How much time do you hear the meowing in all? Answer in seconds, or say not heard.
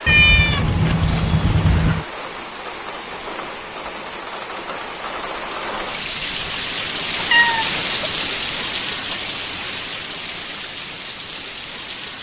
3 s.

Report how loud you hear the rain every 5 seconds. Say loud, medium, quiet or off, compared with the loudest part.
medium, loud, medium.